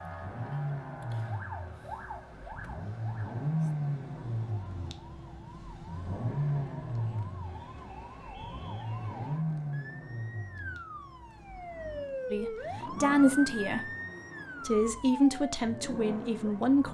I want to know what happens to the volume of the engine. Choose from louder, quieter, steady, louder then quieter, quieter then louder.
quieter.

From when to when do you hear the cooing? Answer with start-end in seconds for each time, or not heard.
not heard.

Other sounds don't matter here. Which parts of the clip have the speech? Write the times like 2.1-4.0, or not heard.
12.3-13.8, 14.7-16.9.